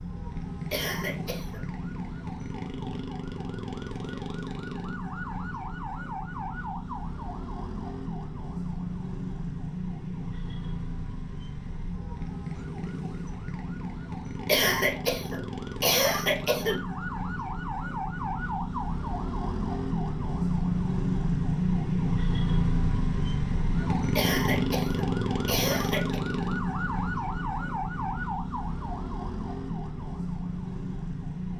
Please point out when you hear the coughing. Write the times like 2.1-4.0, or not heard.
0.7-1.6, 14.4-16.8, 24.1-26.2.